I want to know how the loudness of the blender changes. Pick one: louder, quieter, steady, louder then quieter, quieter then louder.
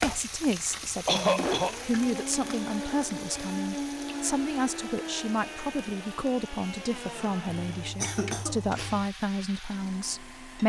quieter.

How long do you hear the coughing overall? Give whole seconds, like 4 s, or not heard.
2 s.